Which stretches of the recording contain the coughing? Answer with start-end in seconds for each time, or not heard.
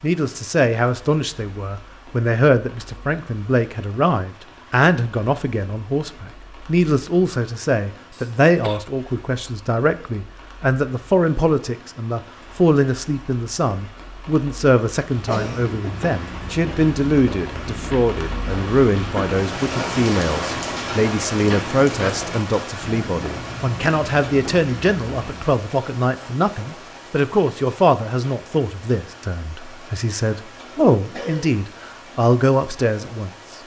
8.1-8.8, 15.1-16.0, 31.1-31.6.